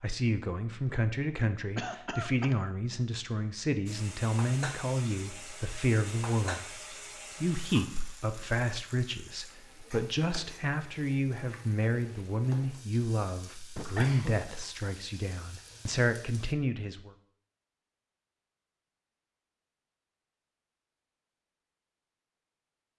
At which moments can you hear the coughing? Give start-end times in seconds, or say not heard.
1.8-2.5, 13.8-14.4.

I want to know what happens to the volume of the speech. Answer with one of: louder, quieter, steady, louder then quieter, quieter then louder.
steady.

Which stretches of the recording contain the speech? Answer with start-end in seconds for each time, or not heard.
0.0-17.1.